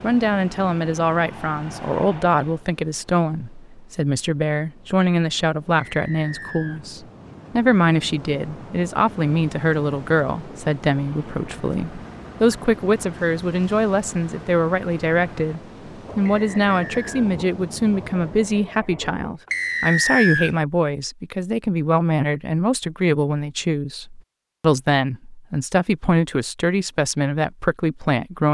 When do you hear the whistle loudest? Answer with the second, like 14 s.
20 s.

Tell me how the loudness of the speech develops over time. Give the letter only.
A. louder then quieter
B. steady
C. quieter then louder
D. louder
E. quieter
B.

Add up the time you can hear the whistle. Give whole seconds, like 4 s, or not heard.
3 s.